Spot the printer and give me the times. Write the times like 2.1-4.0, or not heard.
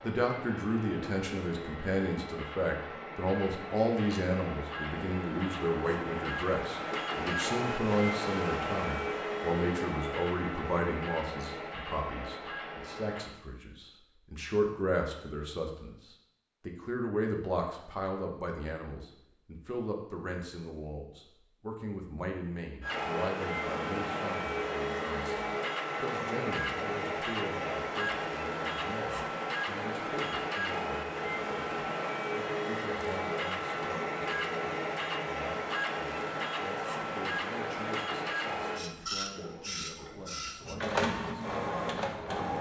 0.0-13.3, 22.8-42.5.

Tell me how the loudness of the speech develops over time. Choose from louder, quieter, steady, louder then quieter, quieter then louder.
quieter.